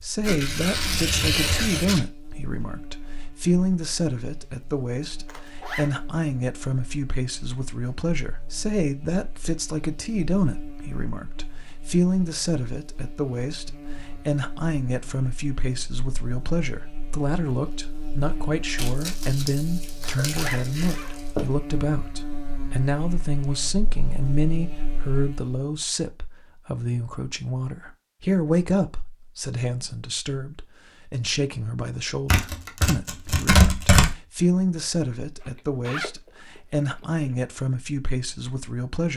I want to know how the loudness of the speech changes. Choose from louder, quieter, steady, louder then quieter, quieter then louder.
steady.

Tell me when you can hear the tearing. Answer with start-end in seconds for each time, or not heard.
0.2-2.0, 18.8-21.5, 32.3-34.1.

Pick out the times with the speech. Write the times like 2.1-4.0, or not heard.
0.0-39.1.